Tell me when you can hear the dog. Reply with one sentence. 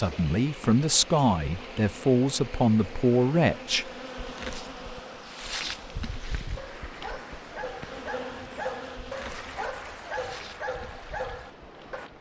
The dog can be heard from 6.5 to 12.1 s.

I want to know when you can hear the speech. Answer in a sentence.
The speech can be heard from 0.0 to 3.9 s.